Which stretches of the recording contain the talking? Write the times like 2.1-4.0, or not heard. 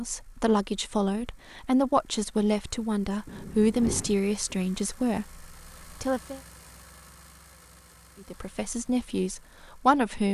0.0-6.4, 8.2-10.2.